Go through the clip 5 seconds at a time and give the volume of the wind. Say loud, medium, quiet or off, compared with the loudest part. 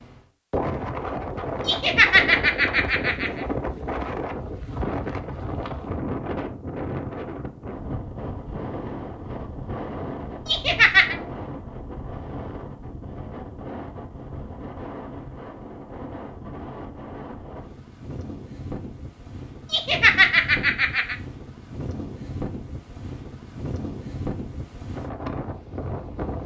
loud, loud, medium, medium, medium, loud.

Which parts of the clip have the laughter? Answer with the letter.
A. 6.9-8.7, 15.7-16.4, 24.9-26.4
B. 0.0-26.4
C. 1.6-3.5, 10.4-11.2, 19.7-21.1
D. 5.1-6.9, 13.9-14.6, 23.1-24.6
C.